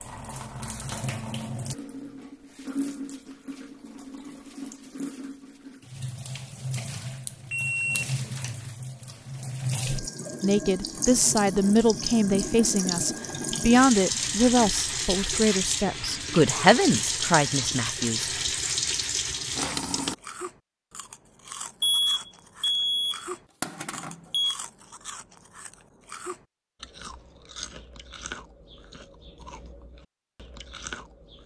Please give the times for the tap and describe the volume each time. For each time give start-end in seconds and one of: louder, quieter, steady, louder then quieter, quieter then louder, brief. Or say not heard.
0.0-20.1 louder.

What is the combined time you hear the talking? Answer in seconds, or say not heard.
8 s.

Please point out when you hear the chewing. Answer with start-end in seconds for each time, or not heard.
20.1-31.4.